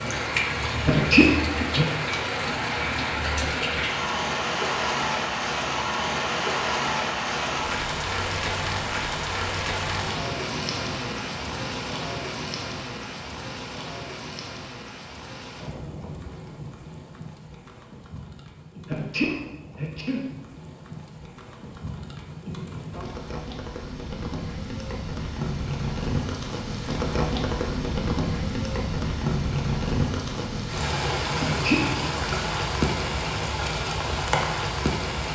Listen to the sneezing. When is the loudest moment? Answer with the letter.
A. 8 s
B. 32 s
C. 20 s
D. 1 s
D.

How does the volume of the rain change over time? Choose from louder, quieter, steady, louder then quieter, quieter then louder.
quieter then louder.